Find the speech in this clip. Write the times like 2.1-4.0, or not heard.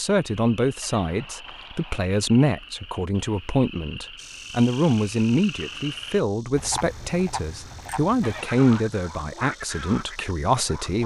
0.0-11.0.